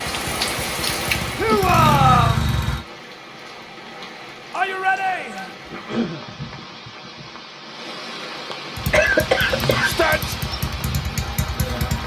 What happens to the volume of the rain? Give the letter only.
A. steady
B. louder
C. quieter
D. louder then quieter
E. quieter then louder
E.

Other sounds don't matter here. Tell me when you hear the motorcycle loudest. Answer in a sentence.
The loudest moment of the motorcycle is at 2 seconds.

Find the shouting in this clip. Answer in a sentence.
You can hear the shouting from 1.4 to 2.5 s, from 4.5 to 5.5 s and from 9.8 to 10.3 s.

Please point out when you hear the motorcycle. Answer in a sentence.
You can hear the motorcycle from 0.0 to 2.8 s and from 8.8 to 12.0 s.